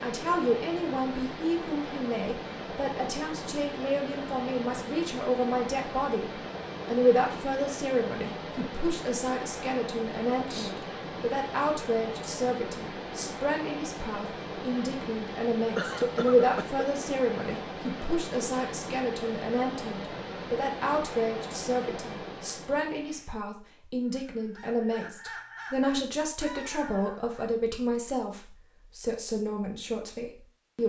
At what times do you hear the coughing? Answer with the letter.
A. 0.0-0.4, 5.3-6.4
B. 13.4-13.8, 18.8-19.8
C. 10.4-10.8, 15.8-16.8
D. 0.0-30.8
C.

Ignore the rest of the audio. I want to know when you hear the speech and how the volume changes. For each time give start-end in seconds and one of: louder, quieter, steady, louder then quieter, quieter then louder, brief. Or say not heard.
0.0-30.8 steady.